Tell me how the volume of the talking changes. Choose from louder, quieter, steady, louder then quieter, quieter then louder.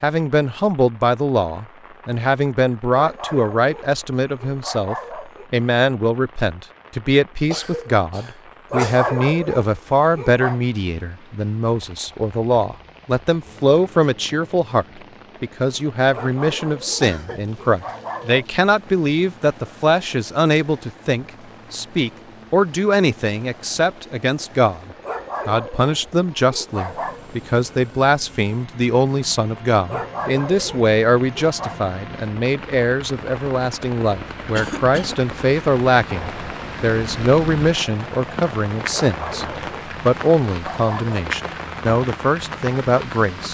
steady.